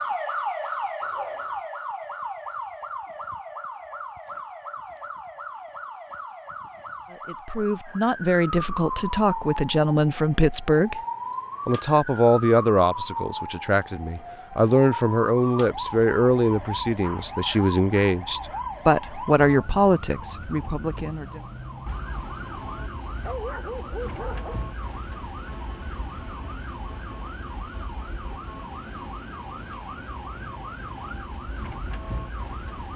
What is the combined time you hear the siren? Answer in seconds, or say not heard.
33 s.